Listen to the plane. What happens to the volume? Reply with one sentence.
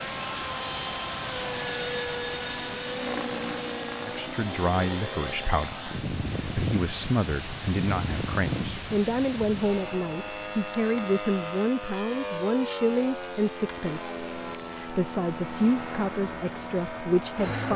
The volume of the plane stays about the same.